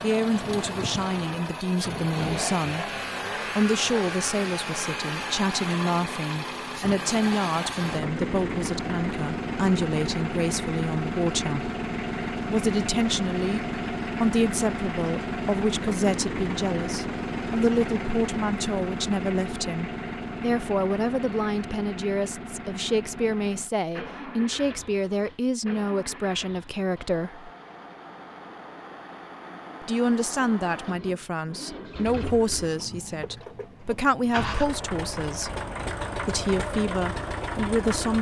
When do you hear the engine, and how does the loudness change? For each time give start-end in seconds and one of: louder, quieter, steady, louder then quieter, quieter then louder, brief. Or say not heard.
0.0-38.1 quieter then louder.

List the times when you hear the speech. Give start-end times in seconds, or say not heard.
0.0-2.9, 3.5-11.7, 12.4-27.5, 29.8-35.5, 36.2-38.1.